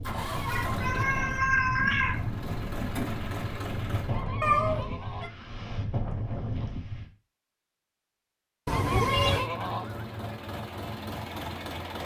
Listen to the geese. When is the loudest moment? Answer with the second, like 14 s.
9 s.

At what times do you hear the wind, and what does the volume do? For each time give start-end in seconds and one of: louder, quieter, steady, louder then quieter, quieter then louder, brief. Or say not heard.
0.0-7.0 steady.